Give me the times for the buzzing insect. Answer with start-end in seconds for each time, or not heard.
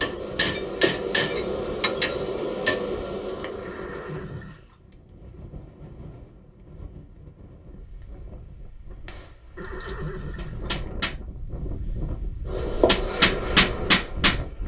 0.0-4.3, 12.4-14.6.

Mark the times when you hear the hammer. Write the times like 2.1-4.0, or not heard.
0.0-2.8, 9.1-11.2, 12.8-14.4.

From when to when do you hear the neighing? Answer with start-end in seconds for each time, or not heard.
3.6-4.8, 9.6-10.8.